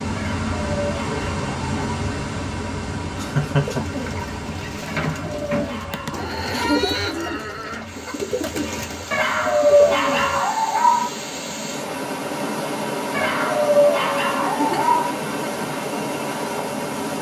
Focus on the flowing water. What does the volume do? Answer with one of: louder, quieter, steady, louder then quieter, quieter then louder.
quieter then louder.